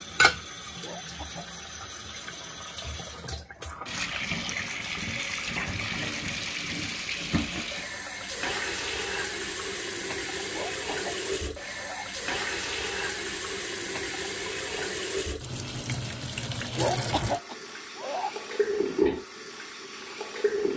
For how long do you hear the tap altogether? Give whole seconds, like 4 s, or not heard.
21 s.